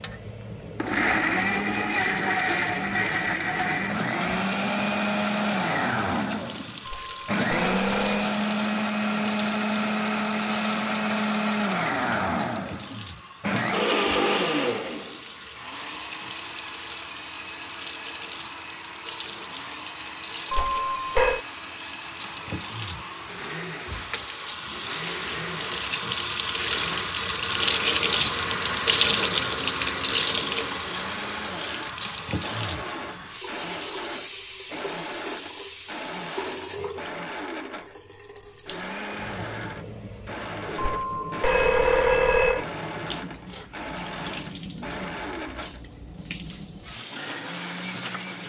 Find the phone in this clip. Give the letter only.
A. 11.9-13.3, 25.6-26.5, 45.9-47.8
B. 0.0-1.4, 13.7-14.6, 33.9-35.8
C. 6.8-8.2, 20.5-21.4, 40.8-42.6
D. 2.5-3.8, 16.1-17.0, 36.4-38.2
C.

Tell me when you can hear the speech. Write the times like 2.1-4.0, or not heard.
not heard.